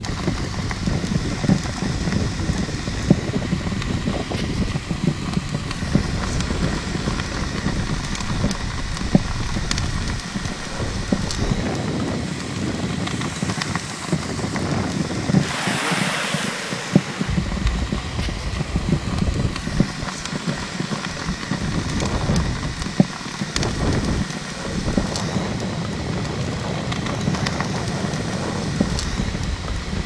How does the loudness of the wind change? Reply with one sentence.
The volume of the wind stays about the same.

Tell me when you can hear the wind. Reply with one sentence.
You can hear the wind from 0.0 to 30.0 s.